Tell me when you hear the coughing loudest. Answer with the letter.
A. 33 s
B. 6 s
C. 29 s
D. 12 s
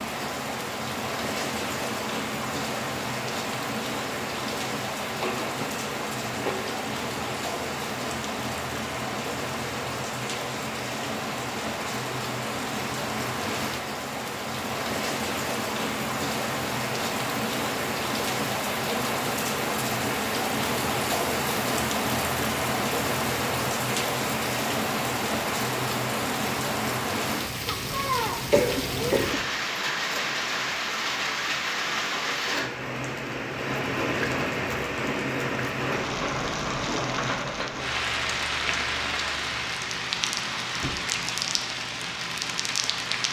C.